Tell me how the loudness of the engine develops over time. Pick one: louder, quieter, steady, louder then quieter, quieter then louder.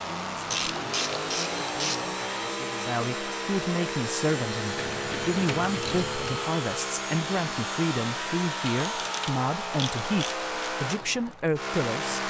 steady.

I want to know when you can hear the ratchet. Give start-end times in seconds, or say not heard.
0.5-2.0, 4.8-6.5, 8.7-10.4.